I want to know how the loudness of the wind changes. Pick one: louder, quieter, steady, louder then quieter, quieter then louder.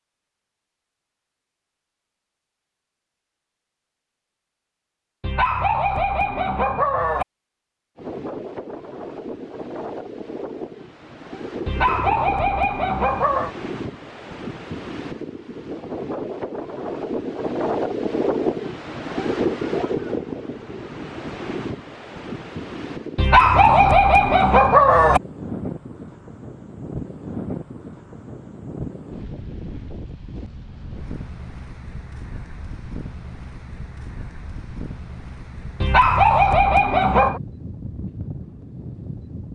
louder then quieter.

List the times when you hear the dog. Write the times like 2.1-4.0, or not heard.
5.2-7.2, 11.7-13.5, 23.1-25.2, 35.8-37.4.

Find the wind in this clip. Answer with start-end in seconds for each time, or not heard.
8.0-39.5.